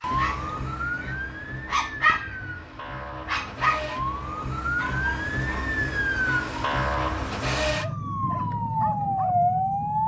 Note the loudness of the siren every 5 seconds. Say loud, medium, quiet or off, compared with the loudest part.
medium, loud.